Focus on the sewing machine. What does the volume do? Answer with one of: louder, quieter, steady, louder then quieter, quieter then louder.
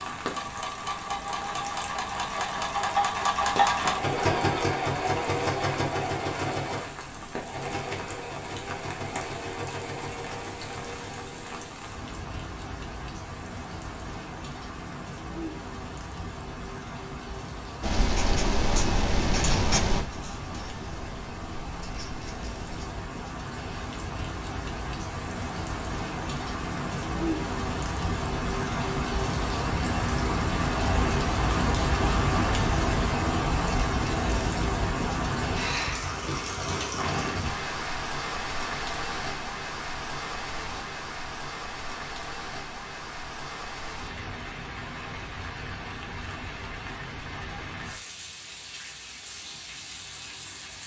louder then quieter.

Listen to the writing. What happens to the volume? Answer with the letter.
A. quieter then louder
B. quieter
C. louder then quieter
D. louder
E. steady
B.